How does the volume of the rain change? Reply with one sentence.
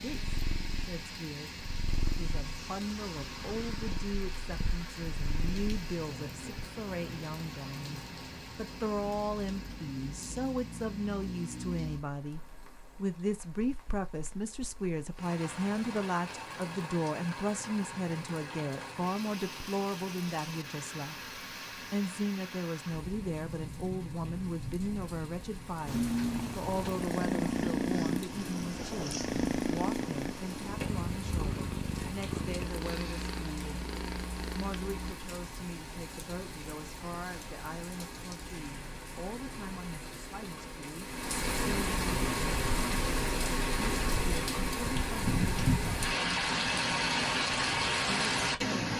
The volume of the rain goes up.